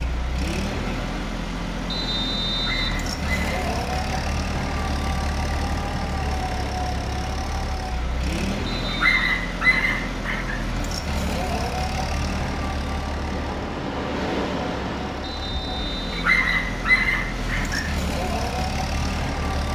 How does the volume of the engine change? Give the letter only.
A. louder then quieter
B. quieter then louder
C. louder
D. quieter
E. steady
E.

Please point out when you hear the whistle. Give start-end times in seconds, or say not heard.
1.9-3.0, 8.7-9.2, 15.2-16.2.